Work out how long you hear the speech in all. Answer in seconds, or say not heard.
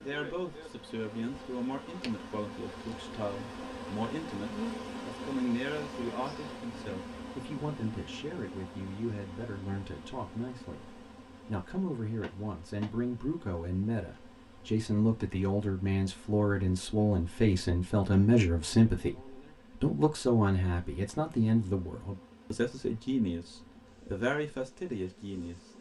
26 s.